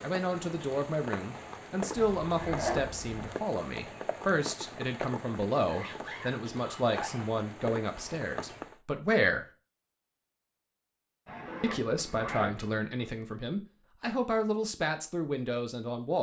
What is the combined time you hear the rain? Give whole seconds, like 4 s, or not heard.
9 s.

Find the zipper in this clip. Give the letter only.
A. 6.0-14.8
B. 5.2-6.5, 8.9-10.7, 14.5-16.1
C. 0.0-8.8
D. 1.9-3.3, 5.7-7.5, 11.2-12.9
D.